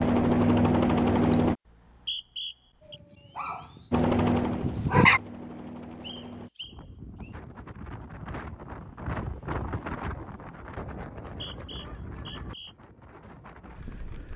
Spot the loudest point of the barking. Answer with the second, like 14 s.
5 s.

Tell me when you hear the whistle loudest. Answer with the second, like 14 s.
2 s.